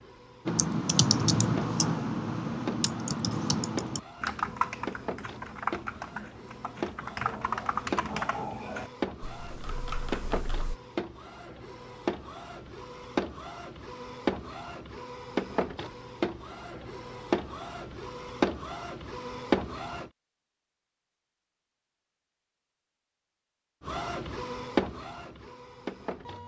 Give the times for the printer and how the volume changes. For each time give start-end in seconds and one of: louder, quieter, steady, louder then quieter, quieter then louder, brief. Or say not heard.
0.0-20.1 louder
23.9-26.4 brief.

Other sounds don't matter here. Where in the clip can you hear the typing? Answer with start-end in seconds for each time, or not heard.
0.5-10.8.